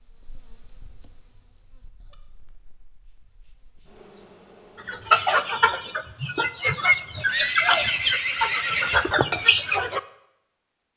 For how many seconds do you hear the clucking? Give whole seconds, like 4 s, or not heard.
5 s.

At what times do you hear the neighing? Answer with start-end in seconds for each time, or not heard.
7.2-9.1.